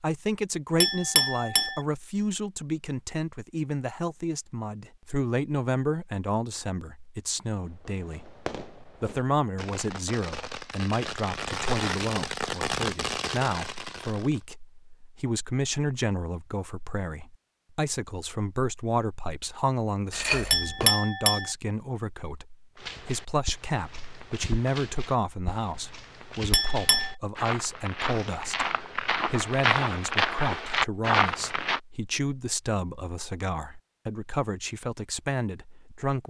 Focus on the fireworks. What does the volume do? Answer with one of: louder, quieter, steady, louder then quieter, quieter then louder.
louder.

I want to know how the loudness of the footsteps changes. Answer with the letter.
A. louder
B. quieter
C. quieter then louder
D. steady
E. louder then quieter
A.